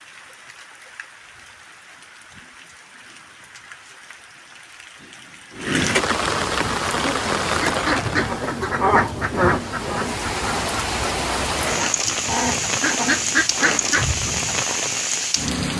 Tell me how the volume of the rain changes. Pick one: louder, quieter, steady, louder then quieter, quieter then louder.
louder.